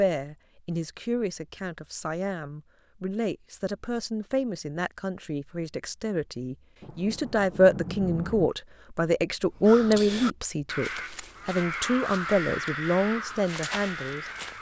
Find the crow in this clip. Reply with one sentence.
The crow can be heard from 9.5 to 14.5 s.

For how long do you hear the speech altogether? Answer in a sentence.
The speech can be heard for 14 seconds in total.